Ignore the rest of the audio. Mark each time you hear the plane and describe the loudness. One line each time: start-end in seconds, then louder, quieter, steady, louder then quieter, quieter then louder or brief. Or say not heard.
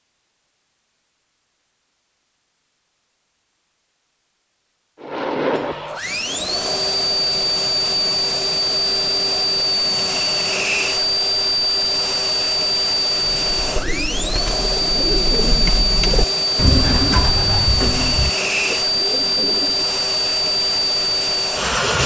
5.0-22.0 steady.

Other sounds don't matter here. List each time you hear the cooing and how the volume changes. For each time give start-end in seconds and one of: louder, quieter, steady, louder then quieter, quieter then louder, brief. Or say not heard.
13.2-19.9 louder then quieter.